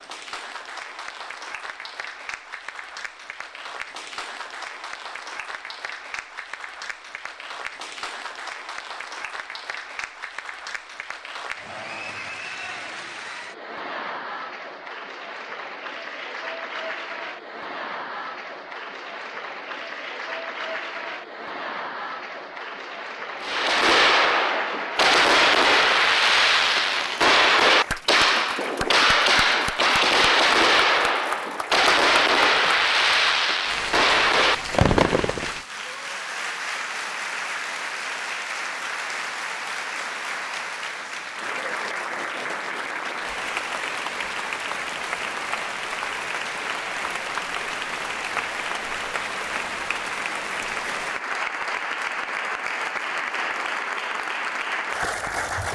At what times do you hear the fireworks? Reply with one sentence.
You can hear the fireworks from 23.4 to 35.5 s.